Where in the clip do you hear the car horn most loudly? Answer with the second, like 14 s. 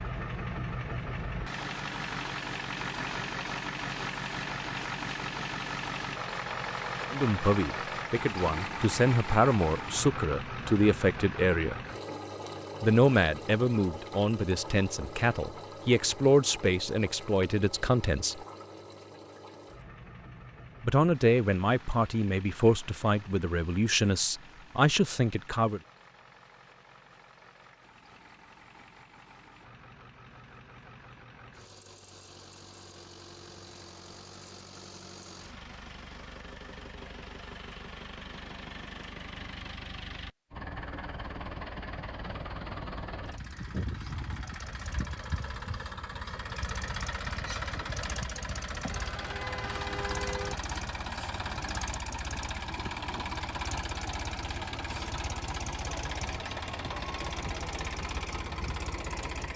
50 s.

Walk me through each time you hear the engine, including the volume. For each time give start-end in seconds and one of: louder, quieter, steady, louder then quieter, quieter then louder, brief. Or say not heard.
0.0-59.5 quieter then louder.